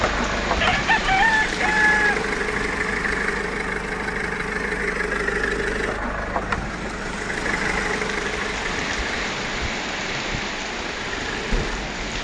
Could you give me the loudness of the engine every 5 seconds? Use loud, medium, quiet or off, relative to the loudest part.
loud, loud, medium.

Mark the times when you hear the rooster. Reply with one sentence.
The rooster can be heard from 0.6 to 2.2 s.